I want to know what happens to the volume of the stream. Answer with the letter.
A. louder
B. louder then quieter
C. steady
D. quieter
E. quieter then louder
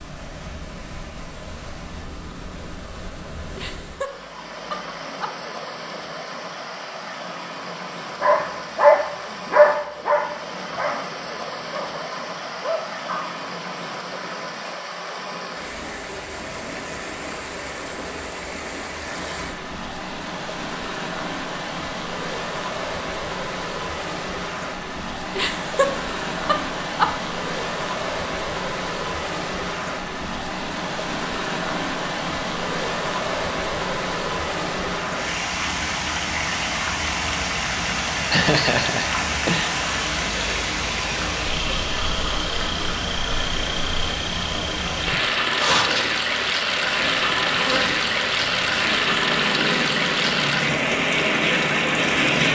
A.